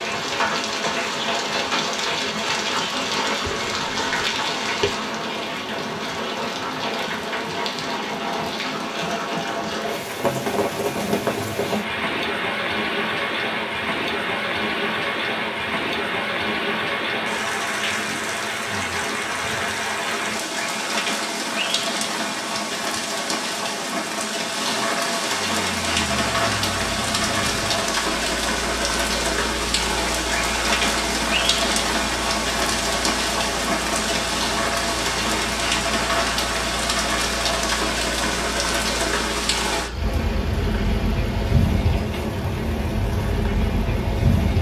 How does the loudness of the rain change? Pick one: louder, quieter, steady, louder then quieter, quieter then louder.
steady.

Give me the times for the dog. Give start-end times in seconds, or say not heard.
not heard.